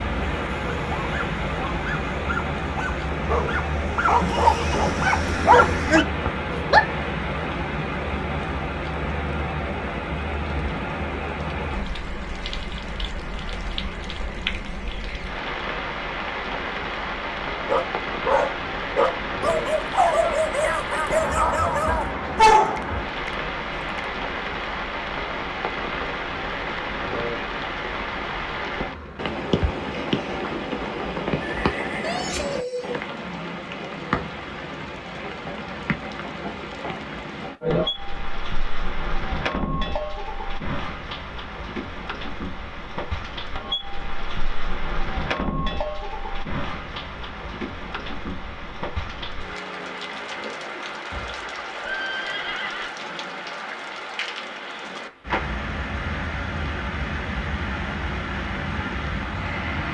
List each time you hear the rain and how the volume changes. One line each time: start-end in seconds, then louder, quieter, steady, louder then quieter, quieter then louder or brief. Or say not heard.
0.0-59.8 steady.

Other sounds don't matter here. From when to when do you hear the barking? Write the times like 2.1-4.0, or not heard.
0.1-7.0, 17.6-24.1.